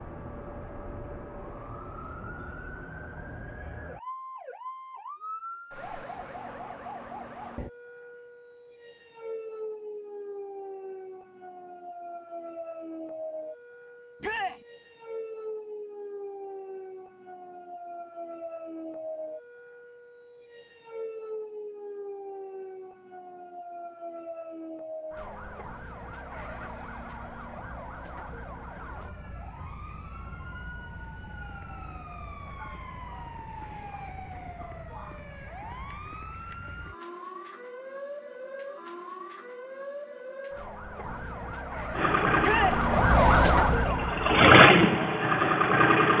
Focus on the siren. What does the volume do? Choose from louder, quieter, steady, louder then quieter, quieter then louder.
louder.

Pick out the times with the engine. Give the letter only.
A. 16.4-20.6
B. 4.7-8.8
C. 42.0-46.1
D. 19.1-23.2
C.